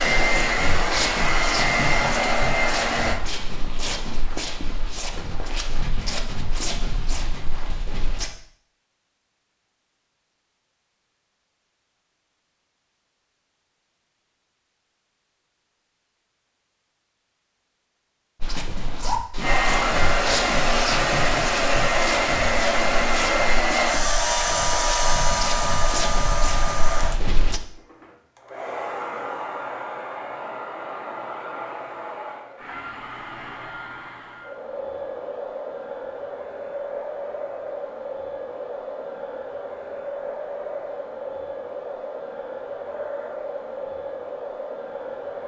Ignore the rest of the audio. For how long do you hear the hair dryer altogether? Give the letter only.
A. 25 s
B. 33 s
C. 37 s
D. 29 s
D.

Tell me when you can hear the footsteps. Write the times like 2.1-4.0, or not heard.
0.0-8.3, 18.4-27.6.